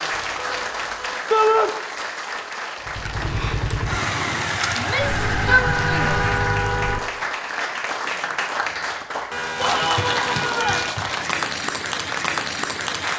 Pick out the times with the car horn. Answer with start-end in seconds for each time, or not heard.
0.1-1.2, 5.0-7.0, 9.3-10.9.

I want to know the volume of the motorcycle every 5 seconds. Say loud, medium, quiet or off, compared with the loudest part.
loud, loud, off.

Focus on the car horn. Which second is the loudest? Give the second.
6 s.